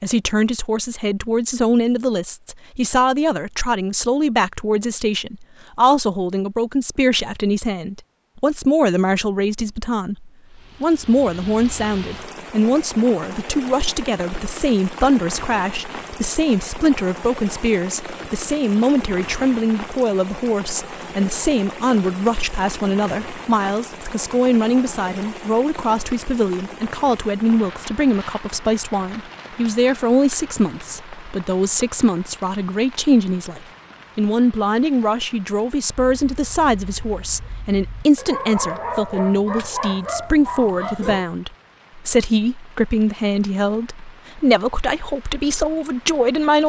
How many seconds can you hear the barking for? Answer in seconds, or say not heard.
5 s.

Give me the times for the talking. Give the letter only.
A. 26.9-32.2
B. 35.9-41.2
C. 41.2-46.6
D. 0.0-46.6
D.